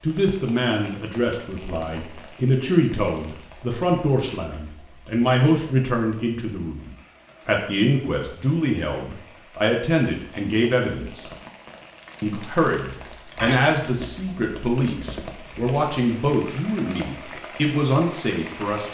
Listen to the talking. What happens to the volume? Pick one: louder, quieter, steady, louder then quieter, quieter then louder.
steady.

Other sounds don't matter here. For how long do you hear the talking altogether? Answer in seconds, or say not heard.
18 s.